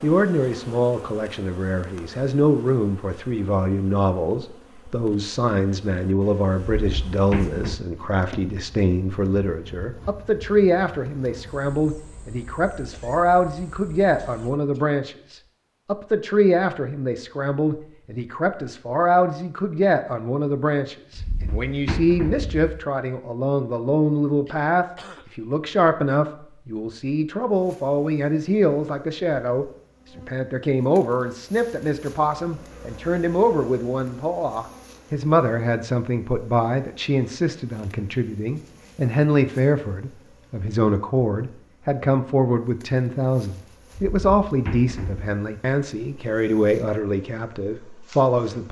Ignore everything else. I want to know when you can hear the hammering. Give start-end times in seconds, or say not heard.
not heard.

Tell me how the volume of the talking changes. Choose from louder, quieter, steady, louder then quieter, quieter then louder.
steady.